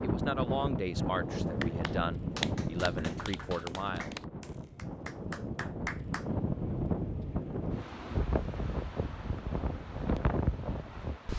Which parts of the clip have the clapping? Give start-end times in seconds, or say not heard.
1.6-6.2.